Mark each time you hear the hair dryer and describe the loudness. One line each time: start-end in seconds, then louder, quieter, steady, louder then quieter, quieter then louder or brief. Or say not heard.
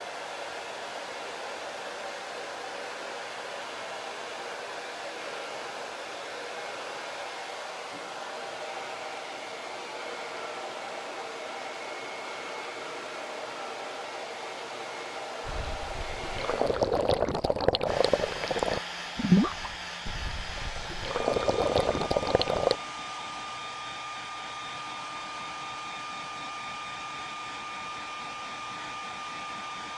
0.0-29.9 steady.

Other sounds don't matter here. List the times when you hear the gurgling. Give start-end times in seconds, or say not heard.
15.4-22.8.